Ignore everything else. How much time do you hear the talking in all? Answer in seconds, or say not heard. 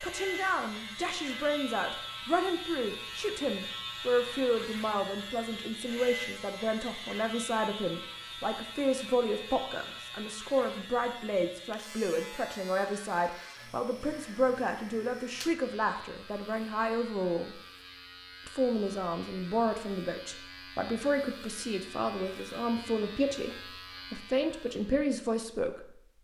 25 s.